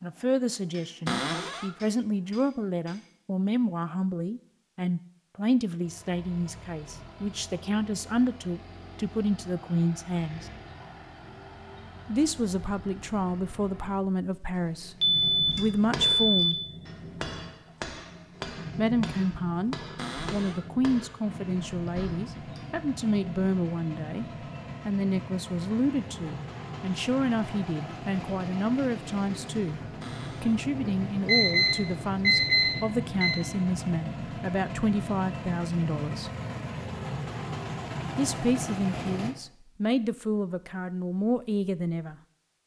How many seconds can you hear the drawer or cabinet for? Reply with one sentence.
You can hear the drawer or cabinet for 2 seconds altogether.